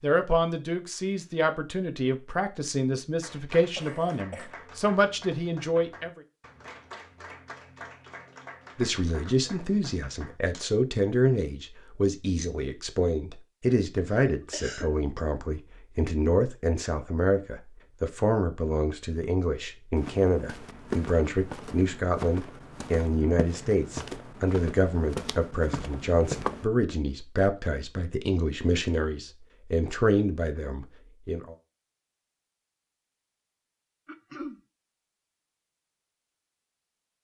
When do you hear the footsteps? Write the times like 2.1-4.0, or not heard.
19.9-26.7.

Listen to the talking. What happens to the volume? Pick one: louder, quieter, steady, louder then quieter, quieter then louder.
steady.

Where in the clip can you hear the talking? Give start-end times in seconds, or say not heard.
0.0-6.2, 8.8-31.6.